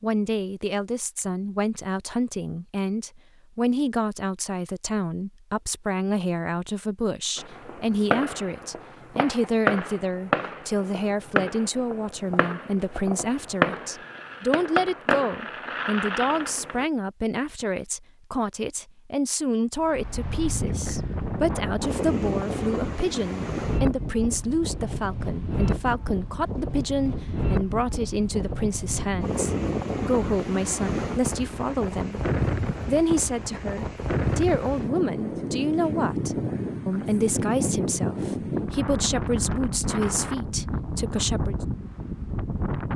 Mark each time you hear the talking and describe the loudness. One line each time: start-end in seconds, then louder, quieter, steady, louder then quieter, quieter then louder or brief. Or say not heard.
0.0-41.5 steady.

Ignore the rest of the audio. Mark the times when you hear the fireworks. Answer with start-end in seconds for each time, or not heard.
7.3-16.9.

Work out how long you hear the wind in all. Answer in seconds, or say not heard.
23 s.